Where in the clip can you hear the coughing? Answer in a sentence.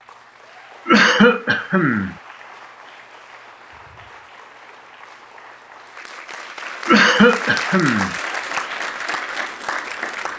You can hear the coughing from 0.8 to 2.1 s and from 6.8 to 8.2 s.